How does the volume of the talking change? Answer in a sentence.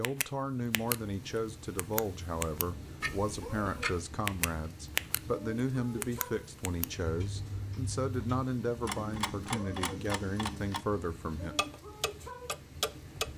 The volume of the talking stays about the same.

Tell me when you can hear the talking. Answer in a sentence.
You can hear the talking from 0.0 to 11.6 s.